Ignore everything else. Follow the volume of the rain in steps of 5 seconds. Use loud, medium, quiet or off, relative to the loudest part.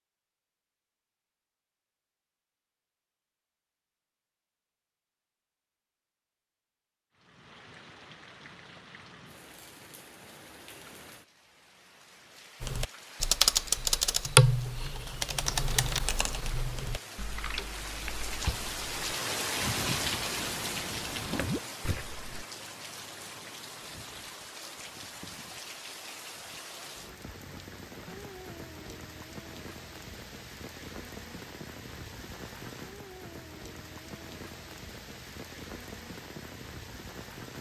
off, quiet, quiet, loud, loud, medium, medium, medium.